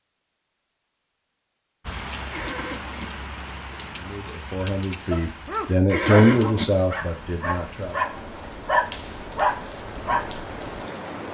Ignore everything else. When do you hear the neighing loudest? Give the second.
6 s.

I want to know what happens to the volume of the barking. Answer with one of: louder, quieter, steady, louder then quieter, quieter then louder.
quieter then louder.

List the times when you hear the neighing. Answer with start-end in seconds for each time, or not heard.
2.3-3.0, 5.8-6.7.